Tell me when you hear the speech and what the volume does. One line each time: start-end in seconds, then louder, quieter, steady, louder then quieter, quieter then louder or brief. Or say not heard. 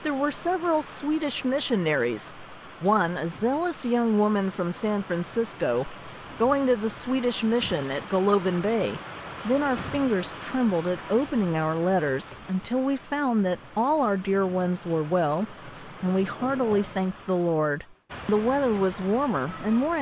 0.0-19.9 steady.